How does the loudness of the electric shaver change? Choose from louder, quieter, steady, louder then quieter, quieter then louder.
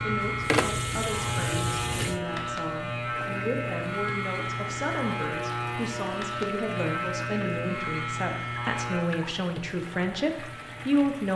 quieter.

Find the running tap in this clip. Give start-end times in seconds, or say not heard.
0.0-11.3.